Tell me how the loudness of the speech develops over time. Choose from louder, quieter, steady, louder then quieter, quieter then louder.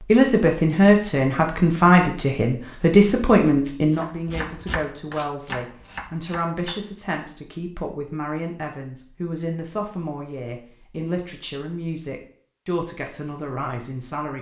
quieter.